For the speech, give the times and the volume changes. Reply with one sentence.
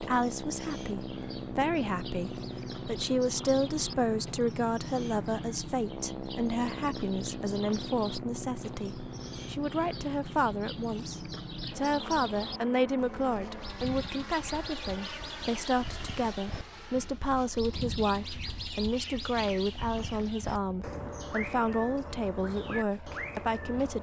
You can hear the speech from 0.0 to 23.9 s, at a steady volume.